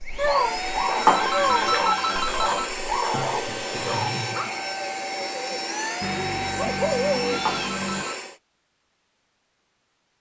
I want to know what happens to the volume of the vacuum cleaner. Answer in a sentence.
The volume of the vacuum cleaner stays about the same.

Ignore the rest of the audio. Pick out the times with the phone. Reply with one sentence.
The phone can be heard from 1.1 to 2.8 s and from 7.5 to 8.2 s.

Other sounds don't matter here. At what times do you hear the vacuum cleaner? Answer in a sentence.
You can hear the vacuum cleaner from 0.0 to 8.4 s.